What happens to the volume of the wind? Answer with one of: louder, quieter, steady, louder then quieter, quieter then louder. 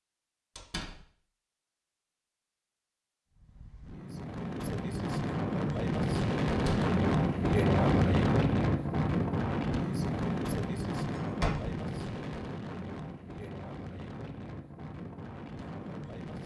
louder then quieter.